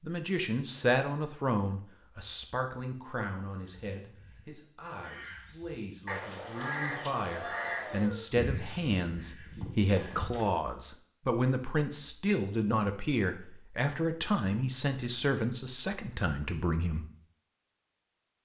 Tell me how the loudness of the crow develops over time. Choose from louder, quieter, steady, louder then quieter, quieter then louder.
louder then quieter.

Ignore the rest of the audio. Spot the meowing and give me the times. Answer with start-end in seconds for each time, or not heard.
7.3-8.2.